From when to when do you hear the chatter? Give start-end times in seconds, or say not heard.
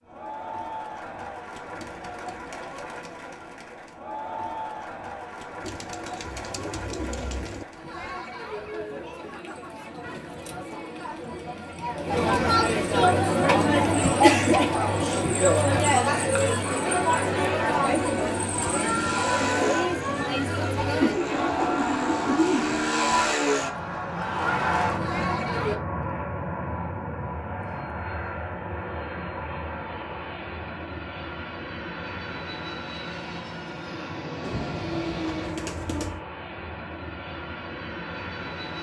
0.0-25.8.